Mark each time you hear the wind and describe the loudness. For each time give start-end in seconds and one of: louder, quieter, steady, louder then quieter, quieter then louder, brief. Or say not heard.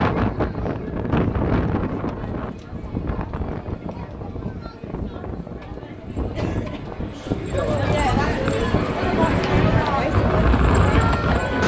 0.0-11.6 quieter then louder.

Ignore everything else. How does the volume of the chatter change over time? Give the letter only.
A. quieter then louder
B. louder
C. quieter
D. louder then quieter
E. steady
B.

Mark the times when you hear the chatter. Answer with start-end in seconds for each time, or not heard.
0.1-11.6.